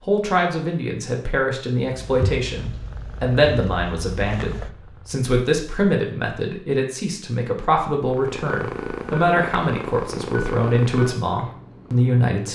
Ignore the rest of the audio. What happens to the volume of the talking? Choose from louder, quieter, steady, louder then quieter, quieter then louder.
steady.